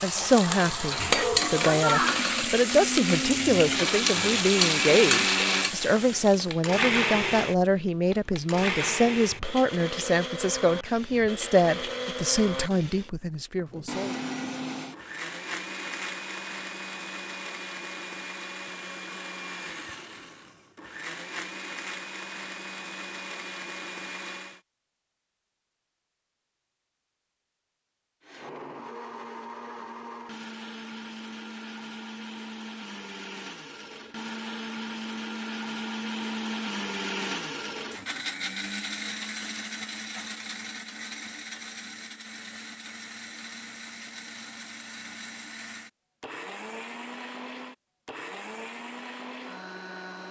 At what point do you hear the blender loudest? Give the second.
5 s.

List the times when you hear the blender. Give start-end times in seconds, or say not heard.
0.0-24.6, 28.2-50.2.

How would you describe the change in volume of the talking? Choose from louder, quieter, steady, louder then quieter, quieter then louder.
steady.